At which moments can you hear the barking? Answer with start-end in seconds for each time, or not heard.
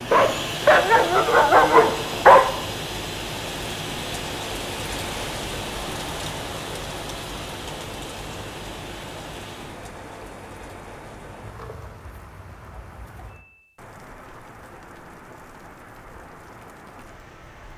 0.1-2.5.